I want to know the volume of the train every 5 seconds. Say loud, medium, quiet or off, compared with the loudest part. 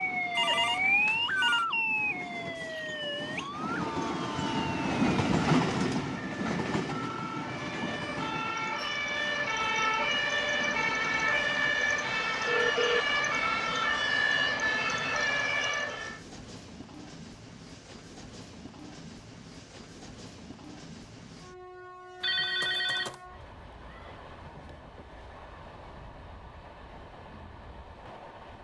medium, loud, quiet, quiet, quiet, quiet.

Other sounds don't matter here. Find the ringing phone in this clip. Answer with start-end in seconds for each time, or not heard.
0.3-1.6, 12.4-13.1, 22.2-23.2.